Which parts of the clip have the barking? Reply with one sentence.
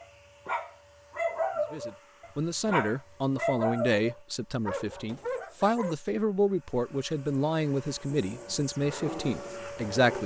You can hear the barking from 0.0 to 6.0 s and from 8.1 to 10.2 s.